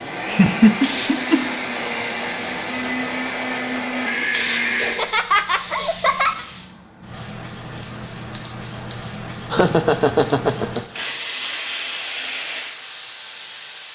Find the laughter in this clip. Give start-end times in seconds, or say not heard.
0.2-2.0, 4.8-6.5, 9.5-10.8.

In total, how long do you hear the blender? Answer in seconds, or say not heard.
5 s.